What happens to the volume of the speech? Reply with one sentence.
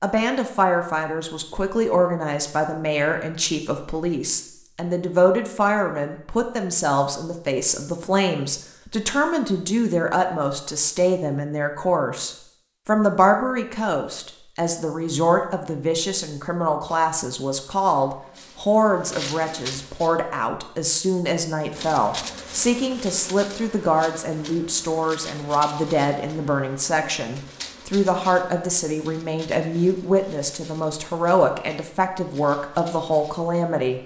The loudness of the speech stays about the same.